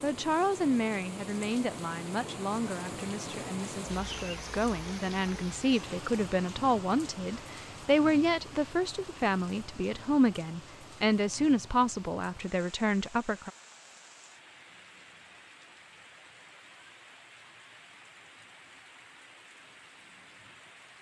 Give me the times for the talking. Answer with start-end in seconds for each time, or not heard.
0.0-13.5.